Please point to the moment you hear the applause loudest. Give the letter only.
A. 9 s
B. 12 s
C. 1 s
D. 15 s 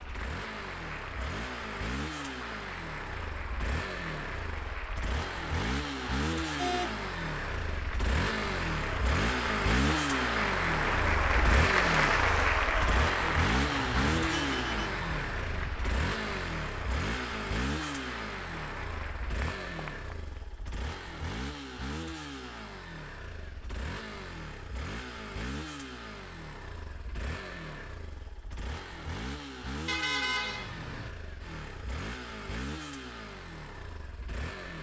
B.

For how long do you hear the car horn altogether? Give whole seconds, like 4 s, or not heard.
4 s.